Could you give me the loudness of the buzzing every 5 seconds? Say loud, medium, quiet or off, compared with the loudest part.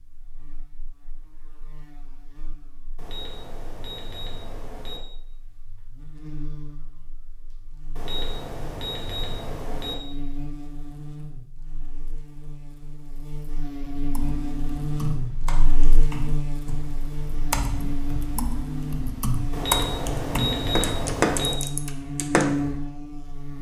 quiet, quiet, medium, loud, loud.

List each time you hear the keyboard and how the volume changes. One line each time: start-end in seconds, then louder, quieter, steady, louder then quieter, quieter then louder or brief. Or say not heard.
14.1-22.6 louder.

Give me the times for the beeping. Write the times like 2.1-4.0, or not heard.
3.0-5.0, 8.0-9.9, 19.5-21.6.